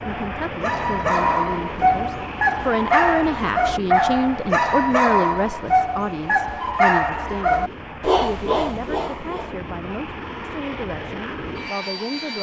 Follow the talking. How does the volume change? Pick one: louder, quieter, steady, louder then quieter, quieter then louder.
louder then quieter.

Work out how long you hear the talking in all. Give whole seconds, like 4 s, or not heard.
12 s.